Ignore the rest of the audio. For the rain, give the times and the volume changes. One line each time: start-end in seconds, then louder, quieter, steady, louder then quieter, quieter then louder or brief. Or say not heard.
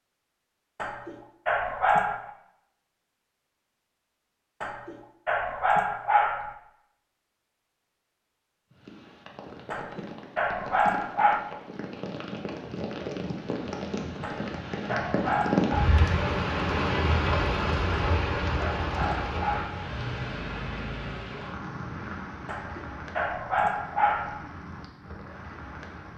8.7-26.1 louder then quieter.